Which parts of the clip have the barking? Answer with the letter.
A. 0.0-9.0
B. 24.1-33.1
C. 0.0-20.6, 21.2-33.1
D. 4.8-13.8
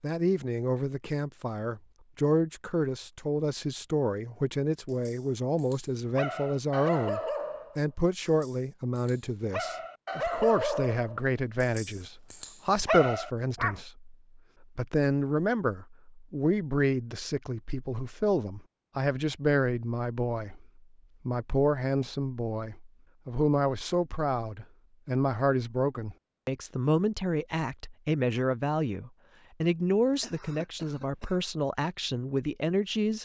D.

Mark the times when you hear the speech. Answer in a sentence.
You can hear the speech from 0.0 to 20.6 s and from 21.2 to 33.1 s.